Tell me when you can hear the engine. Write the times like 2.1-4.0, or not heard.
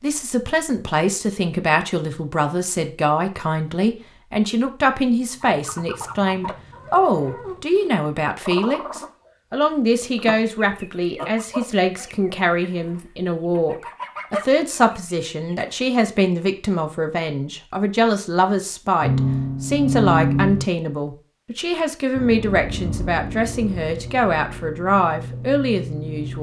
19.0-20.6, 22.1-26.3.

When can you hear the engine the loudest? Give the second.
20 s.